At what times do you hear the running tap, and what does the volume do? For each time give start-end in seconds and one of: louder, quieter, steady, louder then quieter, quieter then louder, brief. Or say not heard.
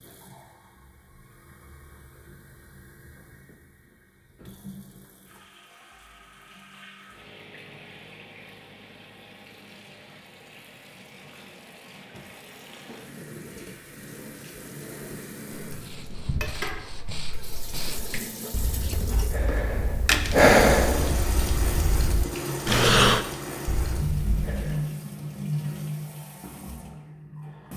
0.0-27.7 louder.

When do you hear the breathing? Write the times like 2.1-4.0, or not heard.
15.7-24.9.